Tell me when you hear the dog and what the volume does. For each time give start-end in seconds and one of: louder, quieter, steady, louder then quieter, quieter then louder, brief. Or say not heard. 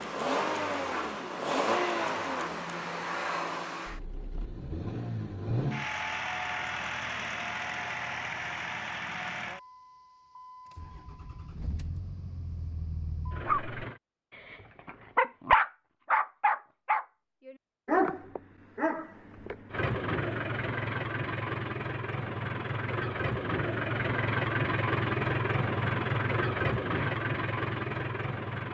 13.4-19.9 louder then quieter.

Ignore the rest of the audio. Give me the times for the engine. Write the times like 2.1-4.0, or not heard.
0.0-14.0, 19.7-28.7.